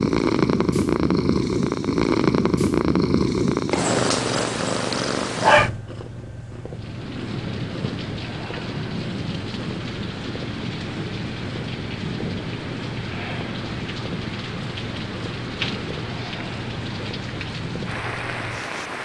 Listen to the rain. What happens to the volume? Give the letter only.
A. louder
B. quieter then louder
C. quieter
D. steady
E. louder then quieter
D.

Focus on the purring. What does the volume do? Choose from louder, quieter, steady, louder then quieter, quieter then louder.
quieter.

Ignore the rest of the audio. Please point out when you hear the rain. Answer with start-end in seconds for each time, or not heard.
6.7-19.0.